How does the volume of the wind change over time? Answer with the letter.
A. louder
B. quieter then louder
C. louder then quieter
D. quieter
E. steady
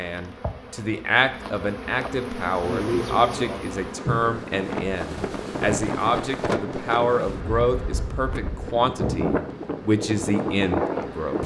B.